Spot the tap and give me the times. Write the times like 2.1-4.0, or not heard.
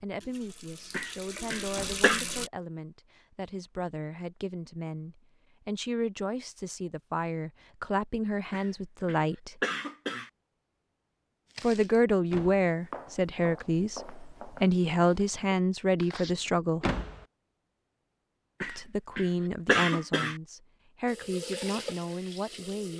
0.0-2.5, 21.1-22.9.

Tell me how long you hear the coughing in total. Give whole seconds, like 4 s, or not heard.
5 s.